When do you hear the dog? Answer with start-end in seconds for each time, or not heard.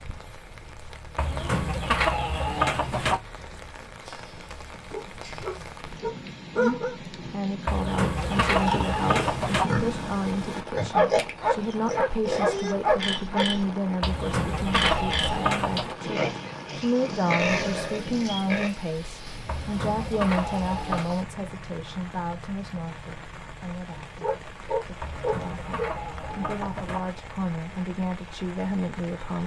4.0-7.0, 10.9-13.4, 24.2-25.9.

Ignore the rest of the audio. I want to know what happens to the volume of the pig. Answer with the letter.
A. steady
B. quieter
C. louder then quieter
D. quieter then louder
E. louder
A.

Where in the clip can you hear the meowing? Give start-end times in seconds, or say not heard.
not heard.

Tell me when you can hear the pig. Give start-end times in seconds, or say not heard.
8.2-18.7.